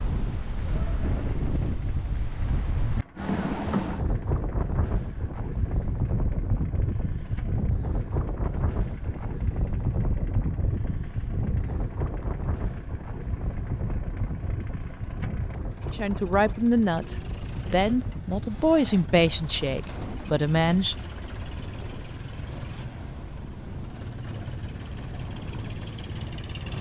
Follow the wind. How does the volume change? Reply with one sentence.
The loudness of the wind goes down.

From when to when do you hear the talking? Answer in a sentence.
You can hear the talking from 15.9 to 20.9 s.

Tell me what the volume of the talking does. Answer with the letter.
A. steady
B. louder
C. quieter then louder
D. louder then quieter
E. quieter
A.